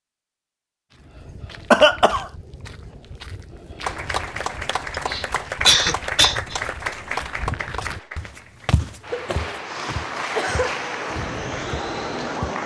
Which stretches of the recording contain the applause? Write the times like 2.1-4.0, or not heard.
3.8-12.6.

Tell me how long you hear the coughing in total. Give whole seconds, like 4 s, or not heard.
4 s.